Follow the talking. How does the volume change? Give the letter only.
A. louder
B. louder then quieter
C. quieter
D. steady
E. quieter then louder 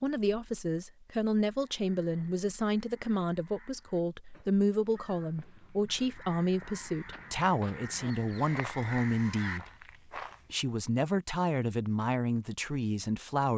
D.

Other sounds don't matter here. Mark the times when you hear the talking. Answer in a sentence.
You can hear the talking from 0.0 to 9.7 s and from 10.5 to 13.5 s.